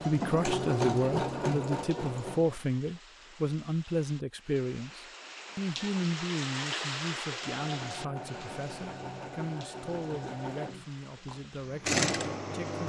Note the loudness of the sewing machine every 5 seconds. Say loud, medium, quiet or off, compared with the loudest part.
loud, medium, loud.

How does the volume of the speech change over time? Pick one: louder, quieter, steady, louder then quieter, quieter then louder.
quieter.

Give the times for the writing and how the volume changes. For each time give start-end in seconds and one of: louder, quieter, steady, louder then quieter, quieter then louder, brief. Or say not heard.
not heard.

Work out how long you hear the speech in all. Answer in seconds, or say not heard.
13 s.